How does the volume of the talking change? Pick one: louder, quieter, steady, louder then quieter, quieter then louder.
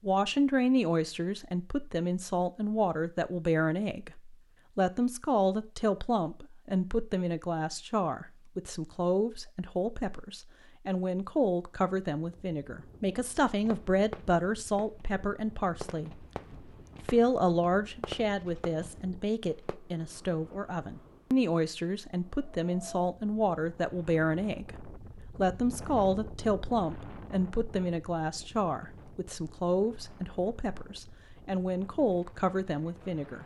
steady.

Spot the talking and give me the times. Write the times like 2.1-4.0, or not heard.
0.0-16.1, 17.1-33.4.